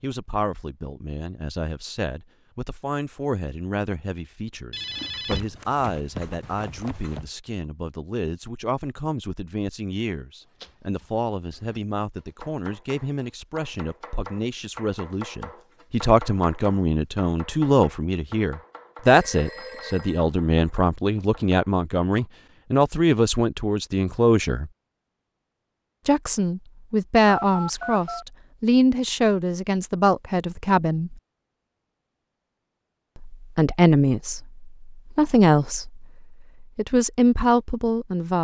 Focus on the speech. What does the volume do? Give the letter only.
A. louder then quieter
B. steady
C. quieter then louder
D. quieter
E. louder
E.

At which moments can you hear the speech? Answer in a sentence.
The speech can be heard from 0.0 to 24.7 s, from 26.1 to 31.1 s and from 33.1 to 38.3 s.